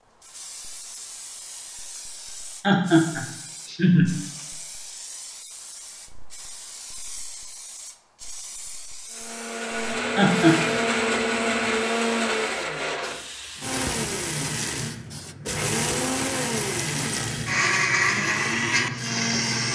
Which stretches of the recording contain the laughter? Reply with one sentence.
The laughter can be heard from 2.6 to 4.2 s and from 10.2 to 10.8 s.